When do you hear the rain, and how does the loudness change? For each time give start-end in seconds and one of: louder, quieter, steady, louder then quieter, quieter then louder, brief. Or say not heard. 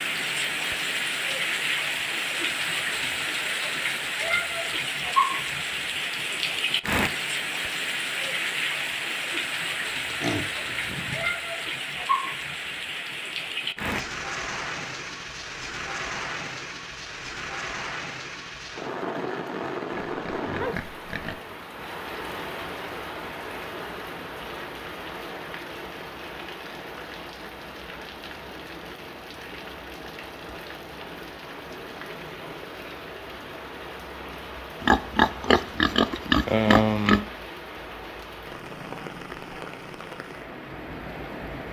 0.0-41.6 quieter.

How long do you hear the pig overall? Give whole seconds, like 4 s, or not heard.
5 s.